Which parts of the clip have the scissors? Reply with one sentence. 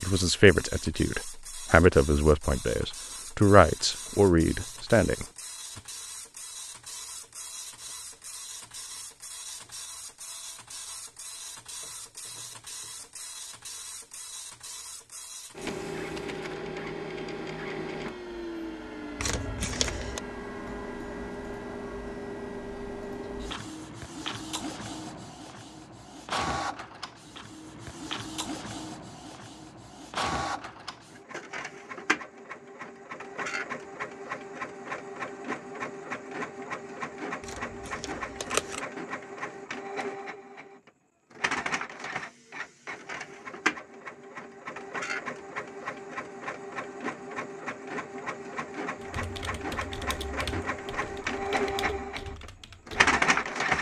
The scissors can be heard from 19.1 to 20.2 s and from 37.4 to 38.8 s.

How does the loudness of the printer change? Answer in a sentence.
The volume of the printer goes up.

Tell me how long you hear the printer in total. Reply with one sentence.
The printer can be heard for 54 seconds in total.